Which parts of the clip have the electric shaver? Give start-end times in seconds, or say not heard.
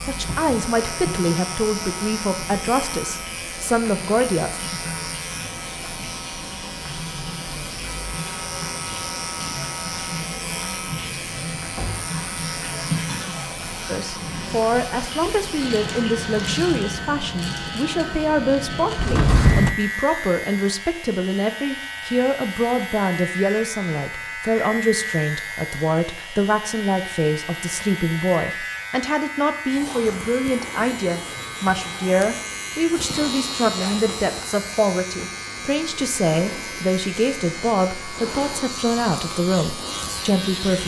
0.0-40.8.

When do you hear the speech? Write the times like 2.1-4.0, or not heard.
0.1-4.6, 13.8-40.8.